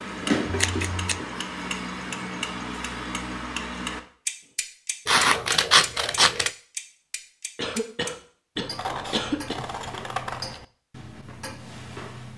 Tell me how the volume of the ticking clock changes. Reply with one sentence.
The loudness of the ticking clock goes down.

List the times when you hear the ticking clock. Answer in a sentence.
The ticking clock can be heard from 0.0 to 12.3 s.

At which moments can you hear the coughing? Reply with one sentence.
The coughing can be heard from 7.5 to 9.6 s.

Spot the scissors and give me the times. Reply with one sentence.
You can hear the scissors from 0.5 to 1.2 s, from 5.0 to 6.5 s and from 8.8 to 10.7 s.